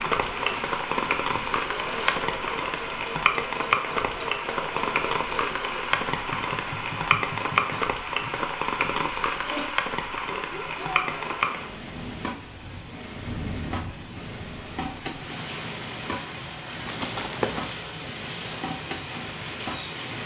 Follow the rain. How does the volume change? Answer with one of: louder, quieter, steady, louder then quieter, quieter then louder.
quieter.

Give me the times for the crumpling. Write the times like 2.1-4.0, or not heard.
0.4-2.2, 16.9-17.7.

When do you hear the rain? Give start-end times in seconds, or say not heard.
0.0-20.2.